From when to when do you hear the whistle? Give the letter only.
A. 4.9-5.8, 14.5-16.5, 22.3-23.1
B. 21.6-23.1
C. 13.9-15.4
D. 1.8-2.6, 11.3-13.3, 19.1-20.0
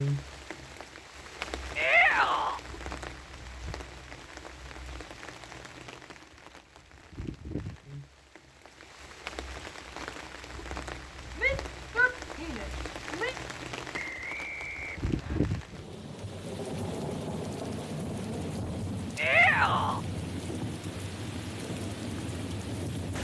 C.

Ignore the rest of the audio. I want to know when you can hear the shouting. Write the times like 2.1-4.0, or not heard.
1.8-2.6, 11.3-13.3, 19.1-20.0.